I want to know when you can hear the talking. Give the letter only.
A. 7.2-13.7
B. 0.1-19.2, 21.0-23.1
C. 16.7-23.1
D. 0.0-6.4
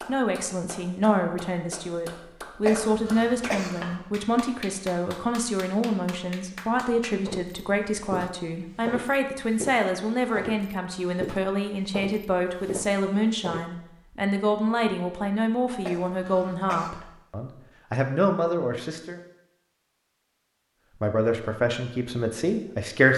B.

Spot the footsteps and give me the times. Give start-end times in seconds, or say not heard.
7.2-13.7.